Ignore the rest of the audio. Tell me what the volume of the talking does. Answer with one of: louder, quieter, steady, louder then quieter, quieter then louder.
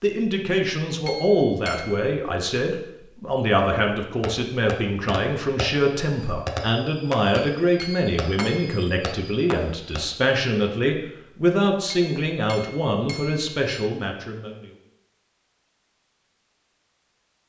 steady.